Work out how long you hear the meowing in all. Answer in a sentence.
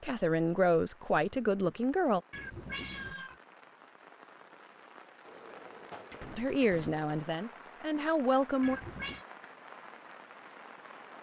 The meowing can be heard for 2 seconds in total.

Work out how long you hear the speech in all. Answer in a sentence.
The speech can be heard for 5 seconds in total.